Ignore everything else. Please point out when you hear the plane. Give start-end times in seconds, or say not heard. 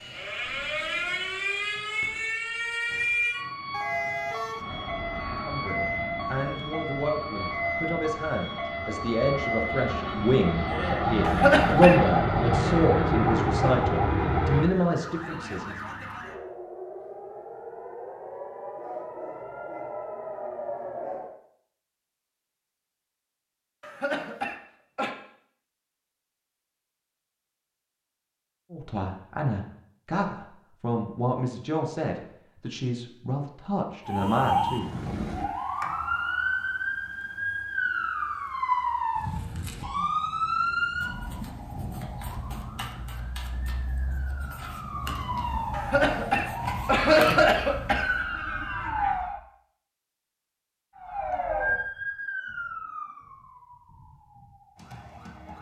4.6-14.7.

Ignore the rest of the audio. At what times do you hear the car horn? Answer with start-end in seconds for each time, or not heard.
3.7-4.7.